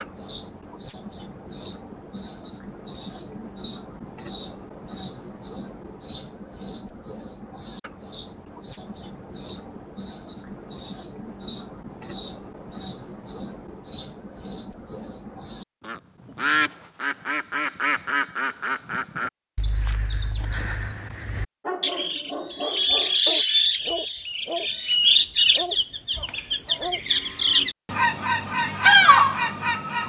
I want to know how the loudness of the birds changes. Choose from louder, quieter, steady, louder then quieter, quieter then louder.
louder.